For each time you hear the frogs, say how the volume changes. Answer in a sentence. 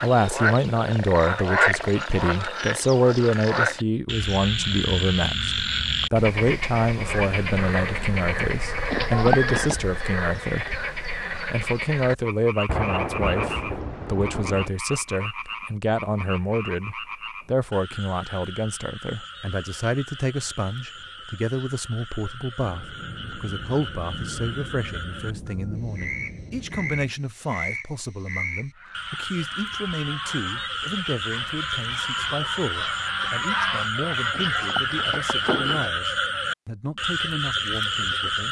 The frogs can be heard from 0.0 to 38.4 s, getting quieter then louder.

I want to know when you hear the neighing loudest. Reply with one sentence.
The volume of the neighing peaks at 9 seconds.